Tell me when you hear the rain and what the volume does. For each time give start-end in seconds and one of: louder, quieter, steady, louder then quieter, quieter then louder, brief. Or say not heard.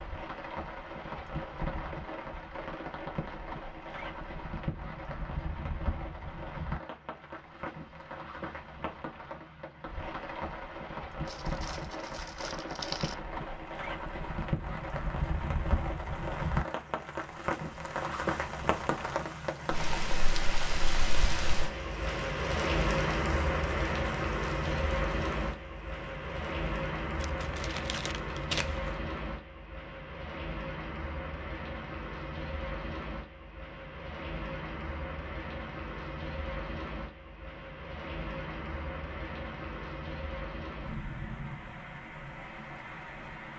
0.0-43.5 louder then quieter.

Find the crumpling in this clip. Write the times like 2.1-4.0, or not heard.
11.2-13.2, 27.1-28.9.